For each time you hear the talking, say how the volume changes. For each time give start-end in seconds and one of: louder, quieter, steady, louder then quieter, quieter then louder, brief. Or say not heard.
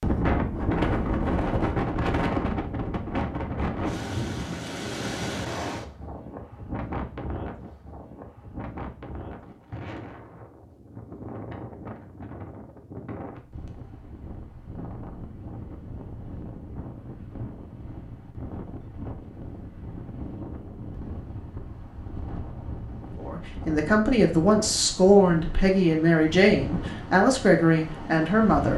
23.1-28.7 steady.